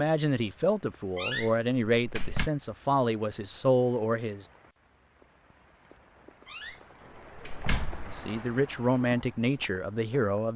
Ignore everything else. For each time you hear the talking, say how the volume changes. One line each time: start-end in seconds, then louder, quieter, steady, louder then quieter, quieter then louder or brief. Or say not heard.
0.0-4.5 steady
8.1-10.5 brief.